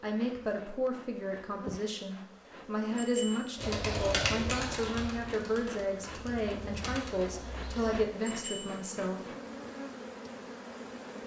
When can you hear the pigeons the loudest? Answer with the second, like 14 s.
4 s.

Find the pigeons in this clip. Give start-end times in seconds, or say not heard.
3.5-8.1.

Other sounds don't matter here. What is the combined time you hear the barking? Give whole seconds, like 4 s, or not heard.
not heard.